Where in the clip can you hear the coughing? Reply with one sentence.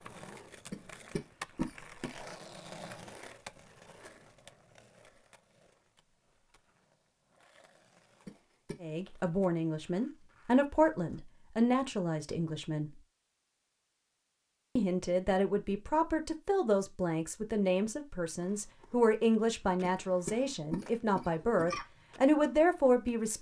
You can hear the coughing from 0.7 to 2.1 s, from 8.2 to 8.8 s and from 19.8 to 21.9 s.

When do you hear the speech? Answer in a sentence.
The speech can be heard from 8.8 to 12.9 s and from 14.8 to 23.3 s.